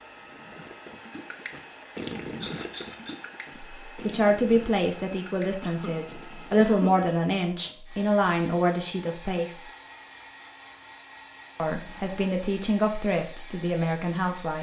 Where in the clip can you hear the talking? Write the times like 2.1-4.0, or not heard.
3.5-9.6, 11.6-14.5.